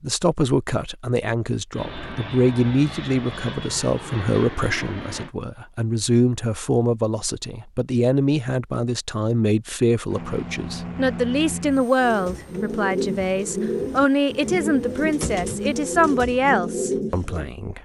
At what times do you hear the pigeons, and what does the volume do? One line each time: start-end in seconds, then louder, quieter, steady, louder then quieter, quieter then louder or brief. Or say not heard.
11.9-17.5 steady.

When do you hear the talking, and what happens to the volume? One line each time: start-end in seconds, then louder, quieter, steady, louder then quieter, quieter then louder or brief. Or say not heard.
0.0-17.8 steady.